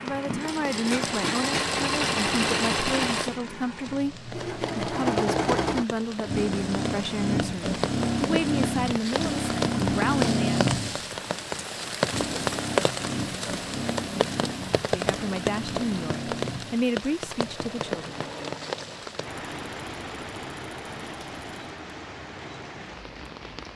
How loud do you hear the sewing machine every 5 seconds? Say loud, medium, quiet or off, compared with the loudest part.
loud, loud, loud, medium, quiet.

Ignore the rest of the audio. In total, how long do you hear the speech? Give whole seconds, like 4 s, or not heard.
14 s.